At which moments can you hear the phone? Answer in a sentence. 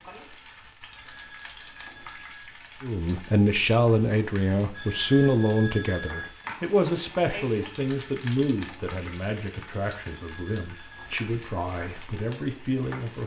You can hear the phone from 0.9 to 2.5 s, from 4.7 to 6.6 s and from 10.1 to 11.3 s.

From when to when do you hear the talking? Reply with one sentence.
You can hear the talking from 2.8 to 13.2 s.